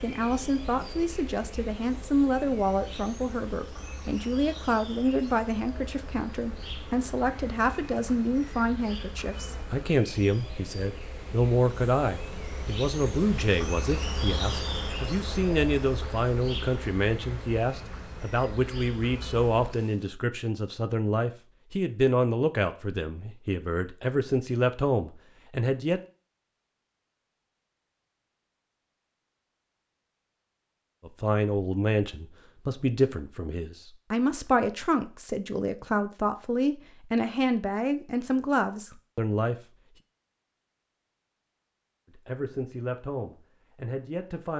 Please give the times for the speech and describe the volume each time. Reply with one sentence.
The speech can be heard from 0.0 to 26.0 s, at a steady volume; from 31.1 to 39.5 s, at a steady volume; and briefly from 42.1 to 44.5 s.